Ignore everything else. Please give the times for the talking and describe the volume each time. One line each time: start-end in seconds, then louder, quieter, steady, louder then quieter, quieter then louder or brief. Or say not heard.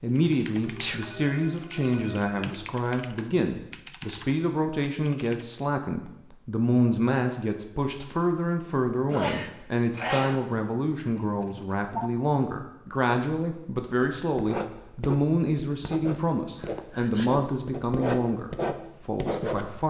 0.0-19.8 steady.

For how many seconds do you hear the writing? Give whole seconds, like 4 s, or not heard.
6 s.